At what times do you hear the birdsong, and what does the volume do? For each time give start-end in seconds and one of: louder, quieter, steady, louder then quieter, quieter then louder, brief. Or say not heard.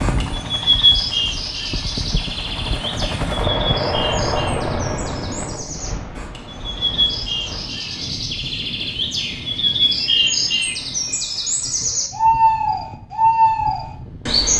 0.0-14.5 quieter then louder.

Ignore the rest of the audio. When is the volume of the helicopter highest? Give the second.
4 s.